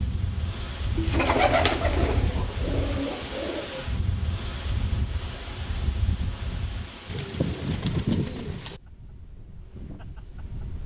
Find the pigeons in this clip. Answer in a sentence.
The pigeons can be heard from 0.9 to 3.8 s and from 7.0 to 8.8 s.